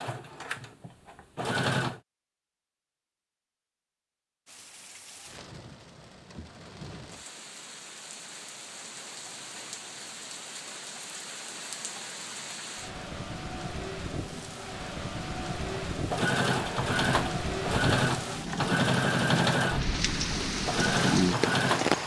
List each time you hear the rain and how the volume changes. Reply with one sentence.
You can hear the rain from 4.5 to 22.0 s, getting louder.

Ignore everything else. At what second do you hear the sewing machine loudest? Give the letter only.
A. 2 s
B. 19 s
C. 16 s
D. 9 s
B.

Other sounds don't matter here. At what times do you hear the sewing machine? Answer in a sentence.
The sewing machine can be heard from 0.0 to 2.0 s and from 15.9 to 22.0 s.